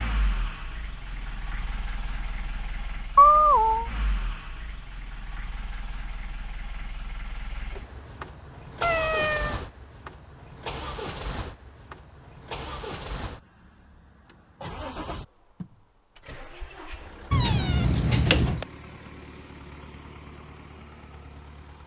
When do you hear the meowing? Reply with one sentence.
The meowing can be heard from 3.1 to 3.9 s, from 8.8 to 9.6 s and from 17.3 to 18.6 s.